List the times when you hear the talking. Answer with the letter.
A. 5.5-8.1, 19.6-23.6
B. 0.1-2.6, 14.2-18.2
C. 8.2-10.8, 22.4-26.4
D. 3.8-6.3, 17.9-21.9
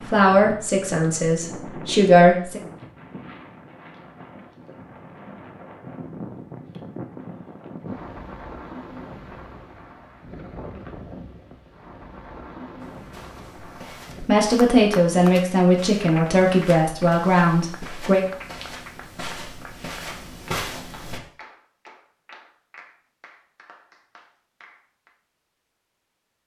B.